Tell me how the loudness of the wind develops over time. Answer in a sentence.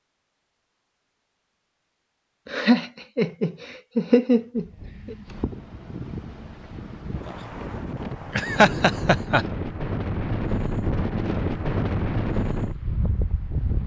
The loudness of the wind goes up.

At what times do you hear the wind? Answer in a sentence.
The wind can be heard from 4.5 to 13.8 s.